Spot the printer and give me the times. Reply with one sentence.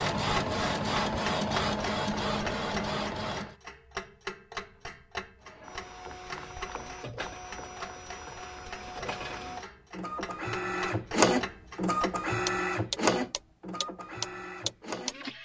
The printer can be heard from 0.0 to 3.5 s and from 5.4 to 15.4 s.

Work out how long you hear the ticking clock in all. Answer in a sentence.
You can hear the ticking clock for 15 seconds altogether.